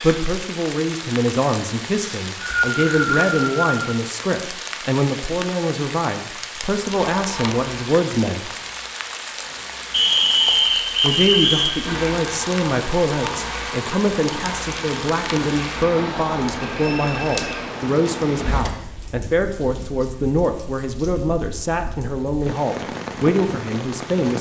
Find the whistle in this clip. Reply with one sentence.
You can hear the whistle from 2.0 to 3.8 s, from 9.9 to 11.8 s and from 16.8 to 17.5 s.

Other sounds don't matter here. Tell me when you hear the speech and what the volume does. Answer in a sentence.
The speech can be heard from 0.0 to 8.5 s, at a steady volume; and from 11.0 to 24.3 s, at a steady volume.